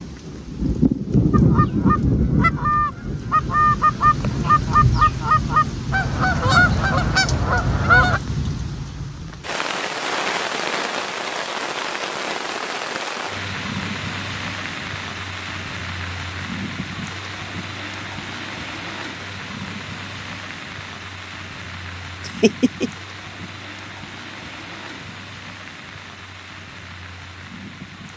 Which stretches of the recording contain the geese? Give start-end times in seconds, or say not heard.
1.3-8.2.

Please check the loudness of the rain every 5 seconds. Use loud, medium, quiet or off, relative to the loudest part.
loud, medium, medium, medium, quiet, quiet.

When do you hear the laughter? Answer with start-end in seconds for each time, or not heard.
22.2-22.9.